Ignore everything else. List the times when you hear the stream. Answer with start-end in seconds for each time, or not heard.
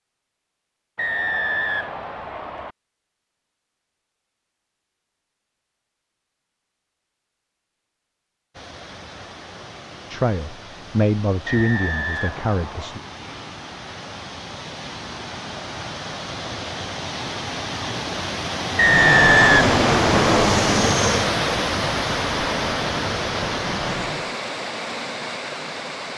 8.5-26.1.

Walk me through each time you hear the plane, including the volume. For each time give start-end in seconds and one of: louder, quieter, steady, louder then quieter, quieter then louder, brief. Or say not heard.
18.8-24.4 quieter.